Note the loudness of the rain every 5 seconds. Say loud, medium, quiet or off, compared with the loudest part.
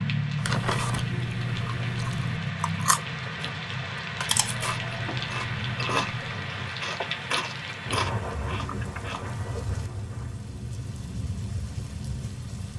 loud, loud, medium.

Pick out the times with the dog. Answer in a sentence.
You can't hear the dog here.